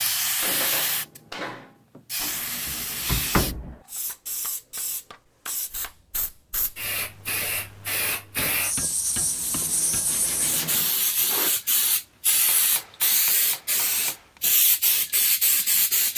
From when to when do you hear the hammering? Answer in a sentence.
You can hear the hammering from 0.4 to 1.8 s, from 4.0 to 6.0 s, from 8.3 to 10.2 s and from 12.3 to 14.4 s.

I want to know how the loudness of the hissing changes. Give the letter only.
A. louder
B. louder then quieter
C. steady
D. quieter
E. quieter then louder
E.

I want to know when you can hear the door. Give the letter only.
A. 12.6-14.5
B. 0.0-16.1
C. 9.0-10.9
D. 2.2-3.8
D.